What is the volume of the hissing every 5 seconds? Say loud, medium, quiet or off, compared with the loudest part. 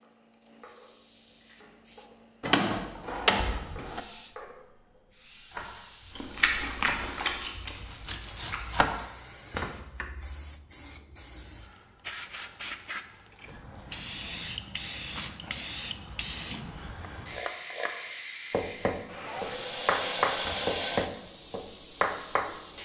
quiet, quiet, medium, loud, loud.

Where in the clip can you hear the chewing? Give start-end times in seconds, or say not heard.
6.2-8.9.